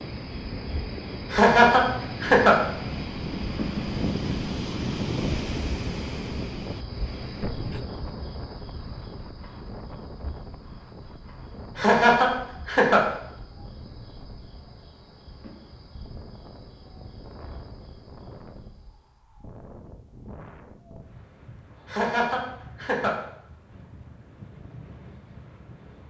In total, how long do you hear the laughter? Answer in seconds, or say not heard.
4 s.